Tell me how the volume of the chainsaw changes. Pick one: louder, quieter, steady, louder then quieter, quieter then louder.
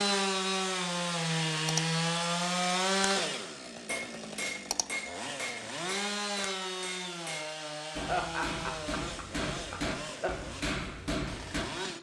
quieter.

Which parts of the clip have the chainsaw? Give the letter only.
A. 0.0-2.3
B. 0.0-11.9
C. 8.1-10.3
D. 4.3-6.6
B.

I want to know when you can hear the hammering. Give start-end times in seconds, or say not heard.
3.9-11.7.